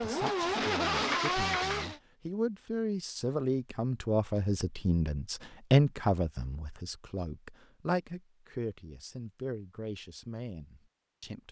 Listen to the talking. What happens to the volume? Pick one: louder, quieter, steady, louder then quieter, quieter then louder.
louder then quieter.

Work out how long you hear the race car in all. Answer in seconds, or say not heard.
2 s.